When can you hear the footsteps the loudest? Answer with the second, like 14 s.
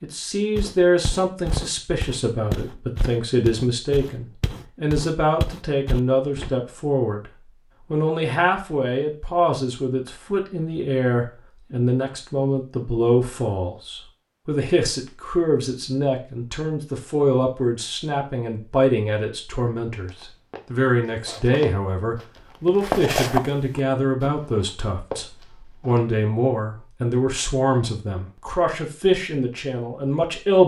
23 s.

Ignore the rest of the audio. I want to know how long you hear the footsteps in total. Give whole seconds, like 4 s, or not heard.
12 s.